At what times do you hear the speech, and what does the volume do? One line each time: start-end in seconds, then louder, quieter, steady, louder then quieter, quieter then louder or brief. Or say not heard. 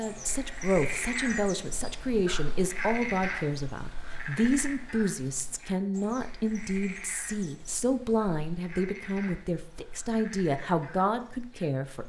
0.0-12.0 steady.